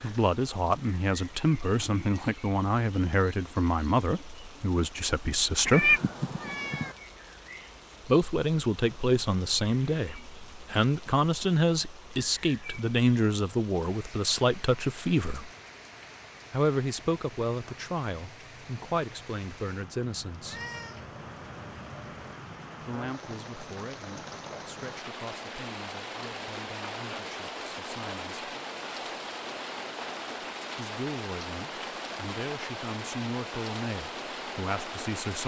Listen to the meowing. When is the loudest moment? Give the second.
6 s.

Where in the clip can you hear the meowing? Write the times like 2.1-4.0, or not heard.
5.7-7.0, 20.4-22.4.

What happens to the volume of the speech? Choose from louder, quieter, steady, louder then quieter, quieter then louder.
quieter.